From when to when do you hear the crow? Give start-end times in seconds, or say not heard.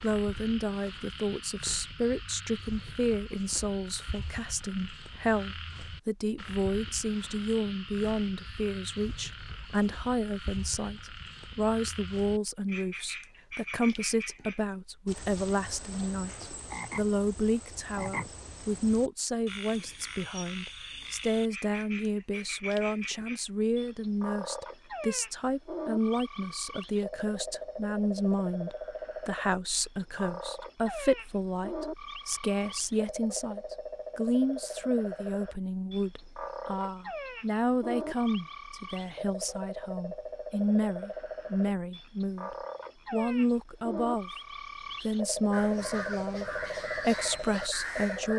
45.5-48.3.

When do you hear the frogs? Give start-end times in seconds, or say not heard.
0.0-48.3.